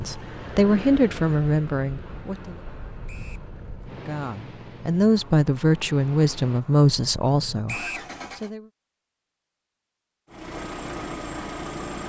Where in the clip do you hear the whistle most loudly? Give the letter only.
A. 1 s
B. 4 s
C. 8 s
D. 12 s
C.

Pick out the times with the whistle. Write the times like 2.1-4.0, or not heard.
3.0-3.5, 7.7-8.1.